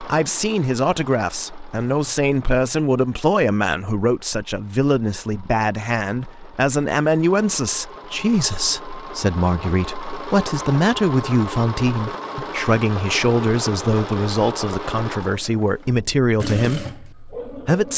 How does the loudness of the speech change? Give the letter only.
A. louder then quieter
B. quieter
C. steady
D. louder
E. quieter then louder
C.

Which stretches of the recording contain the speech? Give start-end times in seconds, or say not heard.
0.0-17.9.